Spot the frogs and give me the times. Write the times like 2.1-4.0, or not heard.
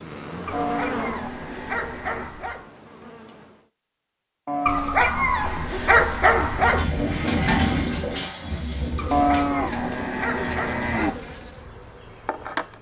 not heard.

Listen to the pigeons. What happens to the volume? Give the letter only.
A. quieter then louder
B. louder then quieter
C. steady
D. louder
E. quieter
B.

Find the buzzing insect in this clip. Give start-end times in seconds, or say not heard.
0.0-3.7, 10.6-12.7.